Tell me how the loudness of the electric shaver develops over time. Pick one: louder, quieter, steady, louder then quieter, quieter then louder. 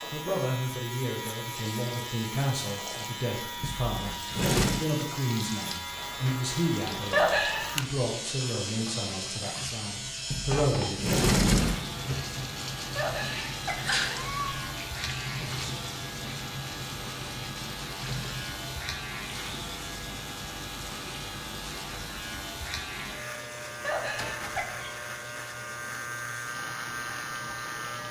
steady.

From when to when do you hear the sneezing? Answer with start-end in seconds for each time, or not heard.
7.1-7.7, 12.9-14.7, 23.8-24.6.